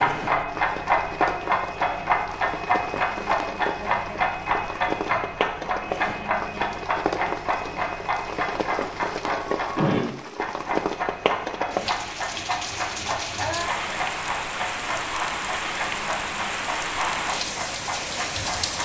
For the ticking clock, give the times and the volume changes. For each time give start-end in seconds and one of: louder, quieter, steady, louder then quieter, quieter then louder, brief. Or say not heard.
0.0-18.8 quieter.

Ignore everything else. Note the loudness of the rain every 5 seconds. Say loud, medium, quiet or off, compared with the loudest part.
medium, loud, loud, loud.